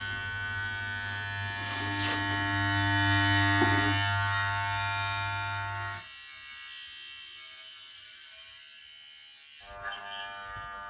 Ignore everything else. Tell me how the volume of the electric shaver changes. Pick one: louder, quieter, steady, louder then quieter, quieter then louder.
louder then quieter.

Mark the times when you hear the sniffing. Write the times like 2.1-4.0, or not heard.
1.0-2.4.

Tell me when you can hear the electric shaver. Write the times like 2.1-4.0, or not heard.
0.0-10.8.